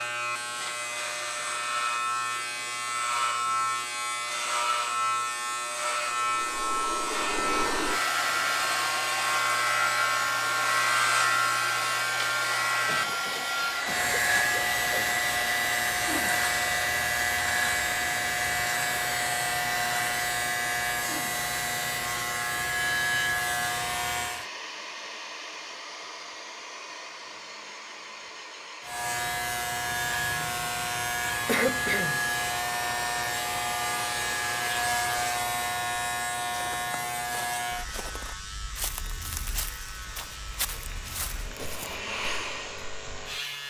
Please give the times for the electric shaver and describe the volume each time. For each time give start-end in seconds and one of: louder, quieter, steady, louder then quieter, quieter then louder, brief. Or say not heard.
0.0-24.4 steady
28.8-43.6 quieter.